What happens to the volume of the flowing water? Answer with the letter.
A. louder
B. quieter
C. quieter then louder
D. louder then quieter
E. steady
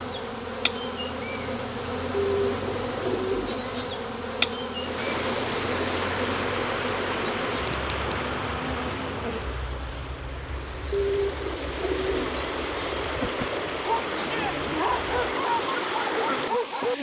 C.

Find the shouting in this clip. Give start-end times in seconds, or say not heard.
14.1-14.6.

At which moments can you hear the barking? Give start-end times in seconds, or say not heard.
13.8-16.9.